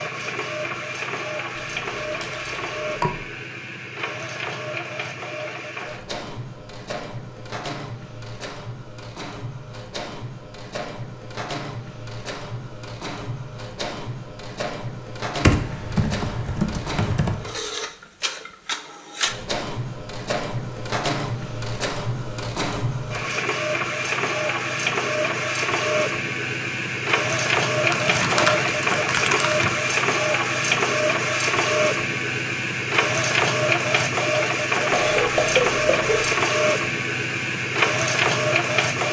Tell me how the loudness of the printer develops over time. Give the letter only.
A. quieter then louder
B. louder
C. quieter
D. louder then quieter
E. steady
B.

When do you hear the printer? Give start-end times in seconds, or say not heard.
0.0-39.0.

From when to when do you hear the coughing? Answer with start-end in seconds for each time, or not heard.
34.9-36.2.